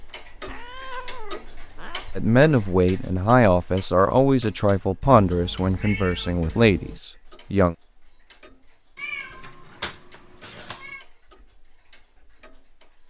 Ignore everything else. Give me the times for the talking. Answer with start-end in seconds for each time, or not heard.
2.1-7.8.